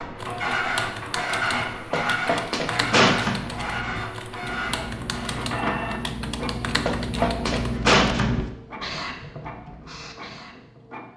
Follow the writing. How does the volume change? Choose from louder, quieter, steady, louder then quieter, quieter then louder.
louder then quieter.